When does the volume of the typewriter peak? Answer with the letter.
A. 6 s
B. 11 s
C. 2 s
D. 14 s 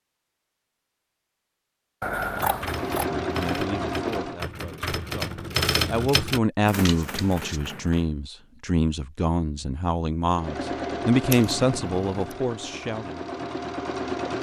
A.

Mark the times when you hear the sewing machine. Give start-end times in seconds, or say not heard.
2.5-4.5, 10.3-14.3.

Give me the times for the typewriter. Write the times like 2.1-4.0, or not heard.
2.2-8.1.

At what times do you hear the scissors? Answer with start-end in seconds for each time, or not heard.
2.0-3.0, 6.8-7.6, 11.3-12.0.